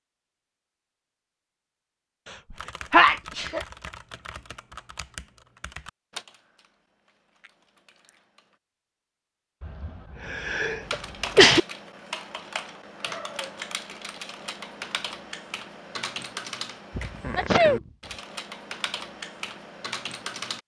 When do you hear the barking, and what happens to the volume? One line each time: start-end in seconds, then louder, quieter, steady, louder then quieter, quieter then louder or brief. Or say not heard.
not heard.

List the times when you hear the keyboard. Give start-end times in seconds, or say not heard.
2.5-8.6, 10.8-20.6.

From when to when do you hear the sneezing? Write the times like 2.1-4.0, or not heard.
2.5-3.6, 9.6-11.6, 16.9-17.8.